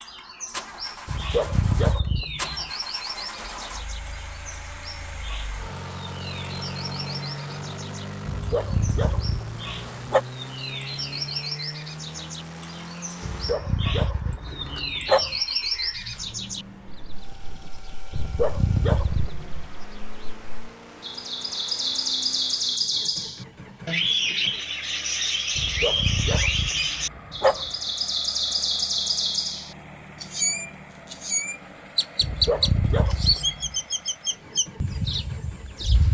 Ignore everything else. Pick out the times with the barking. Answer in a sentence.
You can hear the barking from 1.1 to 2.7 s, from 8.2 to 10.2 s, from 13.2 to 15.4 s, from 18.1 to 19.7 s, from 25.6 to 27.7 s and from 32.2 to 33.8 s.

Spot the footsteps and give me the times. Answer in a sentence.
You can't hear the footsteps here.